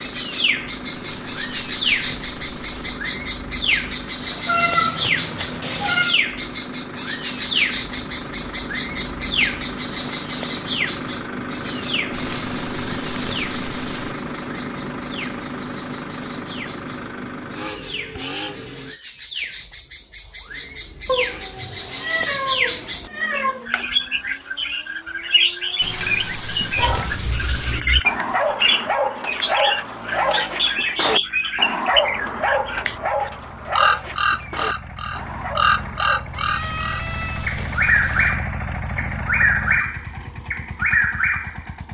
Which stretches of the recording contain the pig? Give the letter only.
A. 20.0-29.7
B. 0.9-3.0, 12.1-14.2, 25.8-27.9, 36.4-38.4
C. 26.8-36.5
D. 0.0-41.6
B.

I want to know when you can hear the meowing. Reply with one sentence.
The meowing can be heard from 4.5 to 6.2 s, from 21.1 to 23.6 s and from 36.3 to 37.5 s.